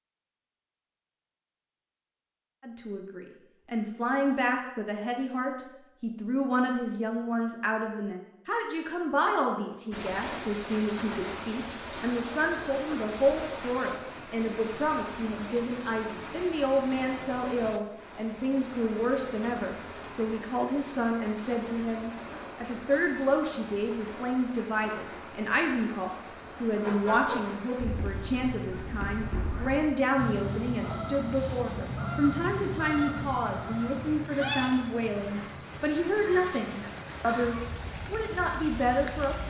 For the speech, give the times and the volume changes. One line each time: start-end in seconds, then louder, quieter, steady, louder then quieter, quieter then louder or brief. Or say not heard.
2.6-39.4 steady.